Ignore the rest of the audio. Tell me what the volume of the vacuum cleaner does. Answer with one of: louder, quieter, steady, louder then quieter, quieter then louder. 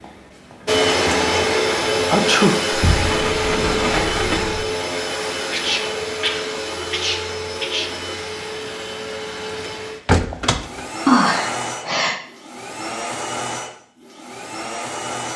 quieter.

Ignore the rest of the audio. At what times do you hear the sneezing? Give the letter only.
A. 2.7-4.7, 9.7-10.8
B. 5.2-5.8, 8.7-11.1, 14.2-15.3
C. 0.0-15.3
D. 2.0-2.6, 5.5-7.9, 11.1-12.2
D.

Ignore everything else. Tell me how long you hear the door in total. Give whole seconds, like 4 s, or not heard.
3 s.